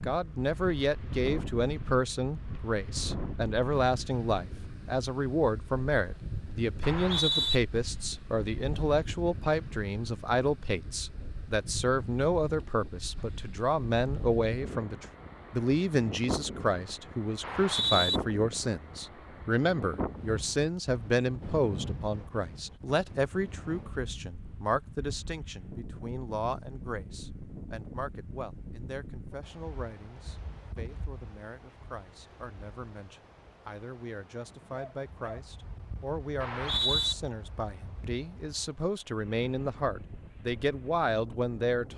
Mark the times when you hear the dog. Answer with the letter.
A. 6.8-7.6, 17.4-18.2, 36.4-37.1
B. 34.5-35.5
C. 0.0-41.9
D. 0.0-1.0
B.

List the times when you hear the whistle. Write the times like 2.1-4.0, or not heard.
6.8-7.6, 17.4-18.2, 36.4-37.1.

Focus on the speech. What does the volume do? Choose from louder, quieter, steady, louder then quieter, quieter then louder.
quieter then louder.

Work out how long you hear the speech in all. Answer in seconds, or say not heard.
42 s.